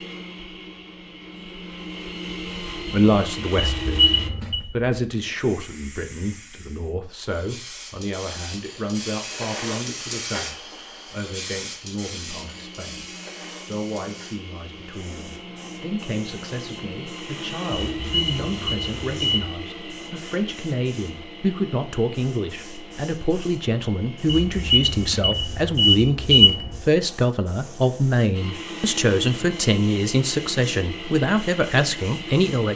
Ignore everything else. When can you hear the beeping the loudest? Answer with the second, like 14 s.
26 s.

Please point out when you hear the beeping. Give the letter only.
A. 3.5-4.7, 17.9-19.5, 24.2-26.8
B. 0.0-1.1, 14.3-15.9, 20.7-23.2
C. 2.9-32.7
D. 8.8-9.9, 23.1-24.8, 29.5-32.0
A.